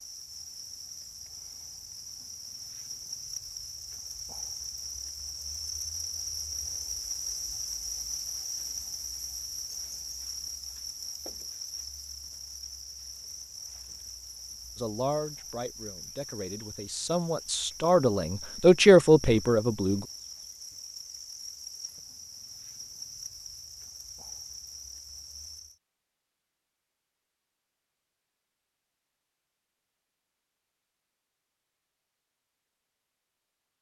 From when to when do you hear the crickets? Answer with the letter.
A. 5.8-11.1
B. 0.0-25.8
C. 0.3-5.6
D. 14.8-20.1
B.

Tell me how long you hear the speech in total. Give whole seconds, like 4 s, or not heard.
5 s.